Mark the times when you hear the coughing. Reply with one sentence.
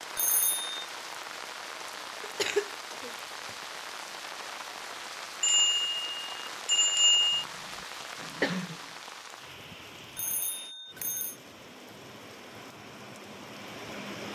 The coughing can be heard from 2.2 to 3.5 s and from 7.8 to 8.8 s.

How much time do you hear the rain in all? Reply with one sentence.
The rain can be heard for 14 seconds in total.